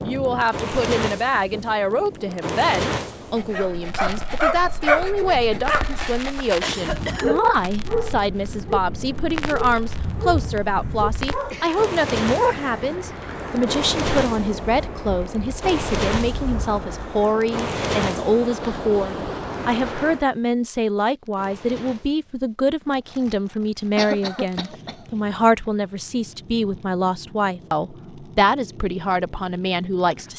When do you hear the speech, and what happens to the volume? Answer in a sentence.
You can hear the speech from 0.0 to 30.3 s, at a steady volume.